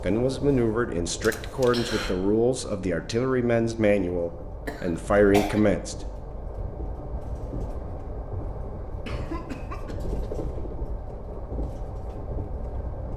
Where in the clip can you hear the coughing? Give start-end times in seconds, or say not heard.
1.2-2.1, 4.7-5.6, 9.1-10.3.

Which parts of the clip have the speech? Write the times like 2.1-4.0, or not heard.
0.0-6.0.